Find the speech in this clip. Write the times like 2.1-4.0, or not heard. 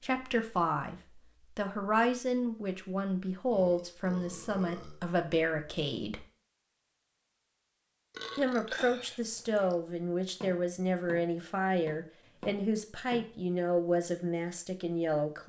0.0-0.9, 1.6-6.2, 8.3-15.4.